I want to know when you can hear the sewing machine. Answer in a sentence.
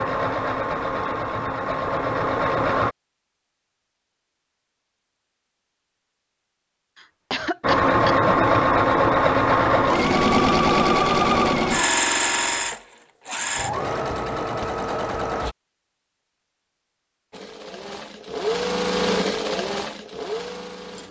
You can hear the sewing machine from 0.0 to 3.0 s, from 7.6 to 15.6 s and from 17.3 to 21.0 s.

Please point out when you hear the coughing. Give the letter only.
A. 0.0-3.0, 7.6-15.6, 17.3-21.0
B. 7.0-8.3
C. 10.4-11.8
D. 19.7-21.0
B.